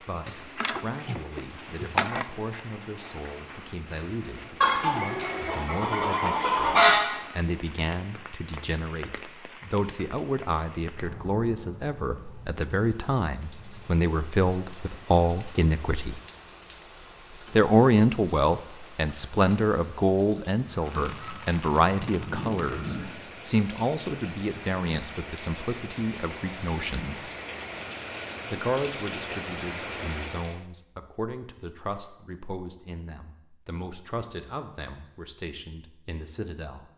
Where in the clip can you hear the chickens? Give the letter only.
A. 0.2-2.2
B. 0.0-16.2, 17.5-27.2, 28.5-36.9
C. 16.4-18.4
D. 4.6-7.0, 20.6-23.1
D.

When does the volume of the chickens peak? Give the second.
7 s.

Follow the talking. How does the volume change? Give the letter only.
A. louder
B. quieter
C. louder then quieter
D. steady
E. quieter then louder
C.